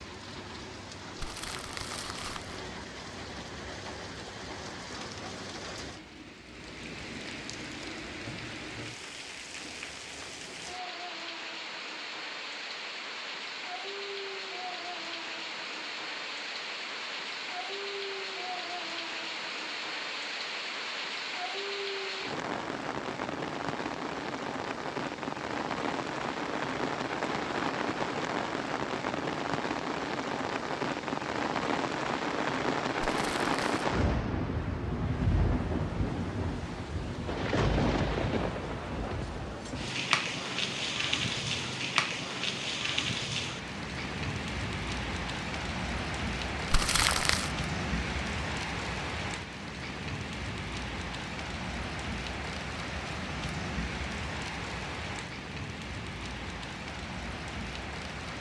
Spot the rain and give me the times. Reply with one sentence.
The rain can be heard from 0.0 to 58.3 s.